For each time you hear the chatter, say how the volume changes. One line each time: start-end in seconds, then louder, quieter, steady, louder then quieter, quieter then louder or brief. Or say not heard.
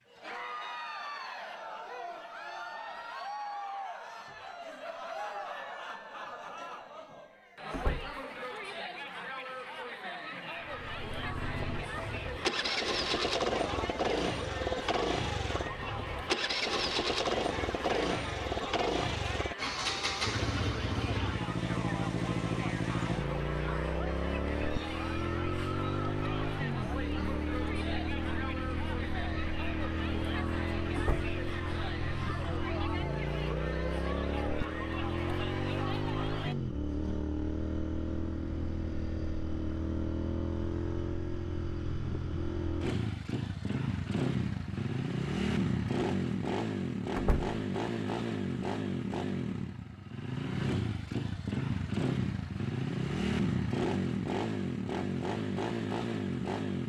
0.0-36.5 steady.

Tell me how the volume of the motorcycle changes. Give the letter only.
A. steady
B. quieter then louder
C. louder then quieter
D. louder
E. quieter
A.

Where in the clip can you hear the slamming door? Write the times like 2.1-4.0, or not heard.
7.7-8.2, 30.9-31.4, 47.1-47.6.